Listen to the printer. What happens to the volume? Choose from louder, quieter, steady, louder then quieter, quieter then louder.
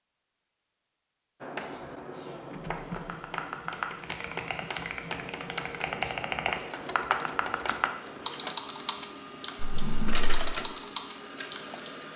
louder.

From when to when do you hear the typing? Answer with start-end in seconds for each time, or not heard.
2.9-12.1.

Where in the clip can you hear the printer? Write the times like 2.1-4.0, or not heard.
2.2-12.1.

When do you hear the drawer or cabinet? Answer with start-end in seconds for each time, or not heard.
9.6-10.4.